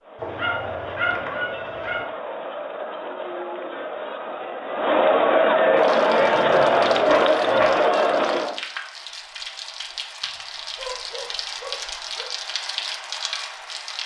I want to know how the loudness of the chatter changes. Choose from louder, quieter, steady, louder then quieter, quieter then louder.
louder.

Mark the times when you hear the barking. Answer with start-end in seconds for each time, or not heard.
0.2-2.0, 6.2-7.7, 10.8-12.2.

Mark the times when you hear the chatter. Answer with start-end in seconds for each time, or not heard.
0.0-8.6.